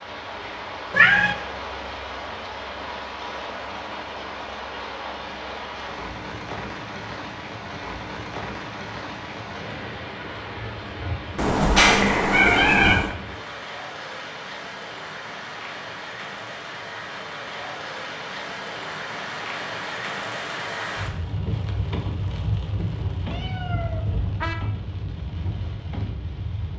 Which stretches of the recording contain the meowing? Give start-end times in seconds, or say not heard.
0.9-1.4, 11.3-13.2, 23.3-24.6.